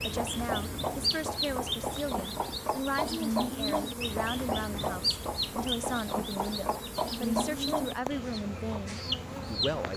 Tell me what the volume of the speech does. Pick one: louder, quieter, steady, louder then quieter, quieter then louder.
steady.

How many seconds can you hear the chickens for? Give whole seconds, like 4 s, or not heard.
10 s.